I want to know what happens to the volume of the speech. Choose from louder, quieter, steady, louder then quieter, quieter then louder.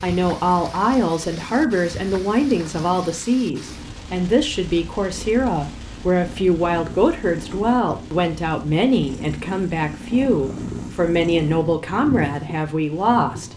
steady.